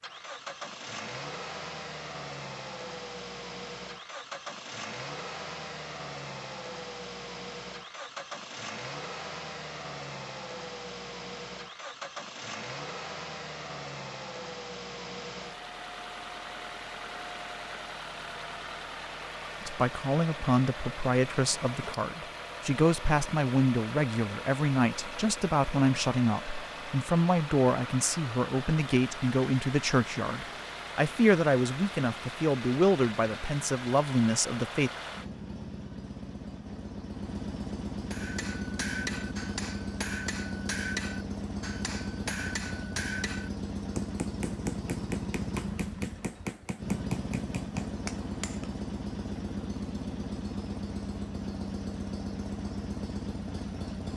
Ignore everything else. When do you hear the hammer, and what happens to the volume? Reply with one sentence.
The hammer can be heard from 38.1 to 48.7 s, at a steady volume.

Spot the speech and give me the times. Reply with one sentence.
The speech can be heard from 19.6 to 34.9 s.